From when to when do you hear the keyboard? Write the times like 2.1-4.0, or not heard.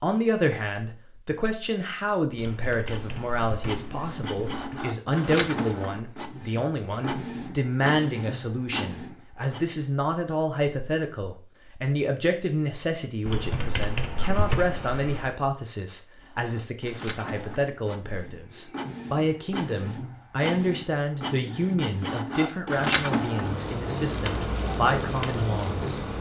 2.4-4.8, 13.2-15.3.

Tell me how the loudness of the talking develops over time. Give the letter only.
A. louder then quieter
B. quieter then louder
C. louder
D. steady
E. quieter
D.